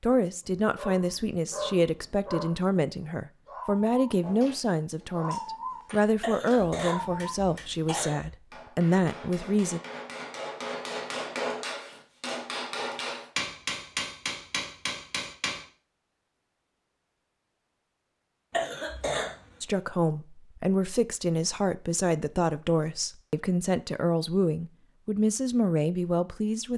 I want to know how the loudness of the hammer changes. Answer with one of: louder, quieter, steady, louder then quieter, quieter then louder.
louder.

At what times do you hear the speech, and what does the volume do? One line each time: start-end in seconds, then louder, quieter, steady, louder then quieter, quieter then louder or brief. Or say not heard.
0.0-9.8 steady
19.6-26.7 steady.